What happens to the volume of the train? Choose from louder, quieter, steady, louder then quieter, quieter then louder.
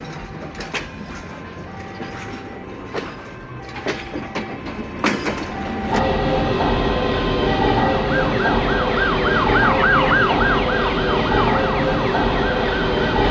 louder.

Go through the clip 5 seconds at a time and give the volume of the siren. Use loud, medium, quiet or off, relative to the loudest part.
quiet, loud, loud.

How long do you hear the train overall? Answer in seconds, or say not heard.
13 s.